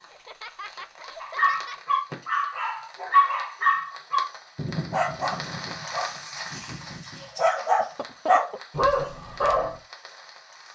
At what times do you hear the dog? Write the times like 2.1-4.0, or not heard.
1.2-9.8.